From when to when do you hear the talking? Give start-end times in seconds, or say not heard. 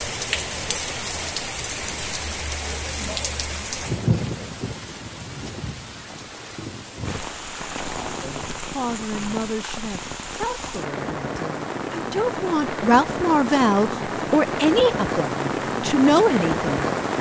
8.2-16.9.